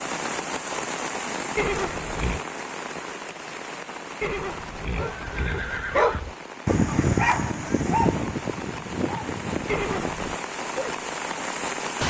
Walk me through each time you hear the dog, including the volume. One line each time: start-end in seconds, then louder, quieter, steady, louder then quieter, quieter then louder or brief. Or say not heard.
4.8-10.9 quieter.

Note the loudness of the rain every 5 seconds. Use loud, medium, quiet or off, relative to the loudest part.
loud, medium, loud.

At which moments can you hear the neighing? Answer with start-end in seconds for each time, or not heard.
1.6-2.5, 4.2-6.2, 9.7-10.3.